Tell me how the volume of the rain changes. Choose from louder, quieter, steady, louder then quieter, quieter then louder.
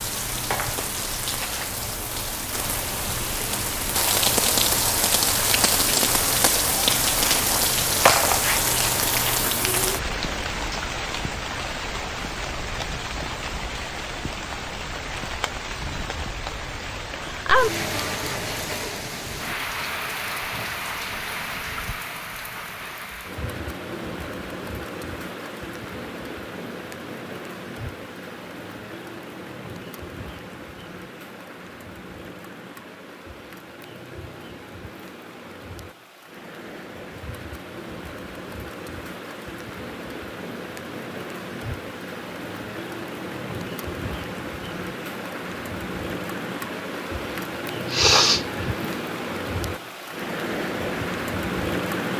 quieter then louder.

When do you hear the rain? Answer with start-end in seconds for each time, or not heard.
0.0-52.1.